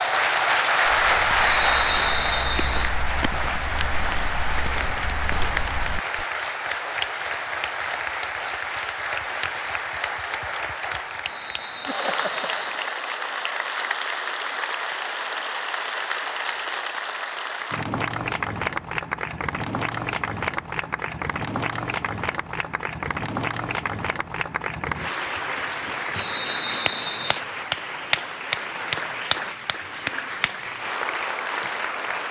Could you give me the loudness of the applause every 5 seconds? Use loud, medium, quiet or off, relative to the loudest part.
loud, medium, medium, medium, medium, medium, medium.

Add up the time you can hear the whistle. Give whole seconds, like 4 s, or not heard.
4 s.